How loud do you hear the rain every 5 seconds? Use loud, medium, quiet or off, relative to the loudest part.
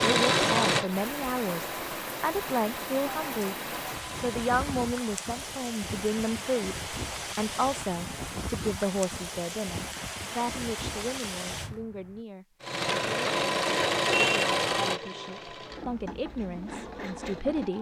loud, loud, loud, off.